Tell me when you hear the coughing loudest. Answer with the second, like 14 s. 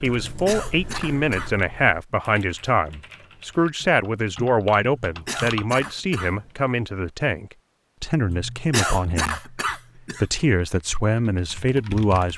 9 s.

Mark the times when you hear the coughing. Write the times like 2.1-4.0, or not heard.
0.2-1.5, 5.0-6.3, 8.2-10.2.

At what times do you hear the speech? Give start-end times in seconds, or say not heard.
0.0-9.6, 10.2-12.3.